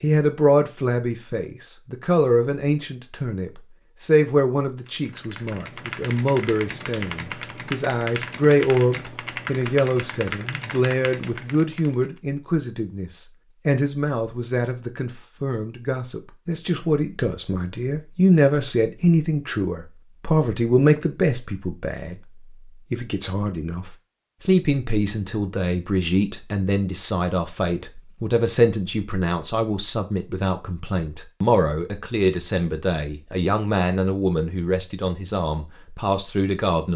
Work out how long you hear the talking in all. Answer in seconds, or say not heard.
36 s.